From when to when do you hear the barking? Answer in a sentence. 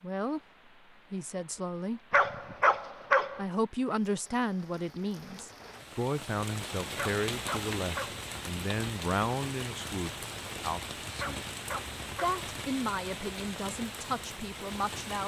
The barking can be heard from 2.1 to 3.4 s, from 7.0 to 8.2 s and from 11.2 to 12.4 s.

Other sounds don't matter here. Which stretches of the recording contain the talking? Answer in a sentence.
The talking can be heard from 0.0 to 0.4 s, from 1.1 to 2.0 s, from 3.4 to 11.4 s and from 12.2 to 15.2 s.